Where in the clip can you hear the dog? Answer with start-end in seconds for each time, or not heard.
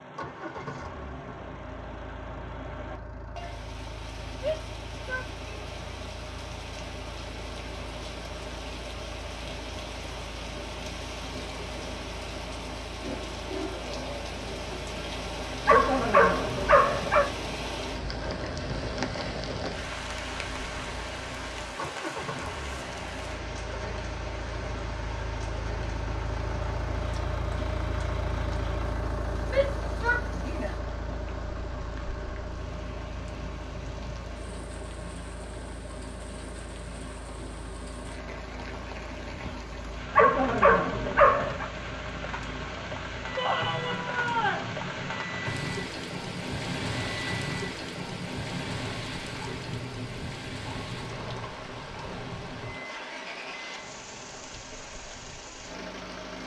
15.7-17.3, 40.1-41.6.